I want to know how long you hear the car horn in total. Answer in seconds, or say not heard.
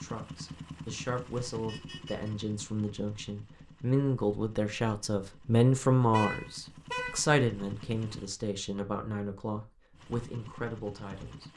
2 s.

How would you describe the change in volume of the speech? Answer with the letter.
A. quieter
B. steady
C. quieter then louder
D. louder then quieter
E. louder
D.